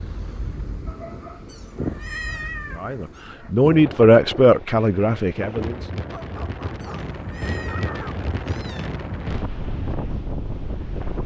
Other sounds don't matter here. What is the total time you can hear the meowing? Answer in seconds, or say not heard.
4 s.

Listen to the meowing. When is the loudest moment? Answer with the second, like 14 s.
2 s.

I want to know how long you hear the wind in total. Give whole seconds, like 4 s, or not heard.
11 s.